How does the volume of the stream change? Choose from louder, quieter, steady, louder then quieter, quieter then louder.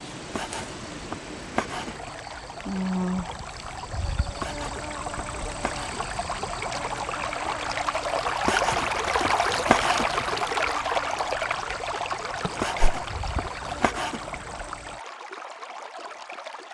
louder then quieter.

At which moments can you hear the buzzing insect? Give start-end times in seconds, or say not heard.
0.0-15.0.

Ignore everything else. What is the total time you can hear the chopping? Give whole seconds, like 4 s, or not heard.
8 s.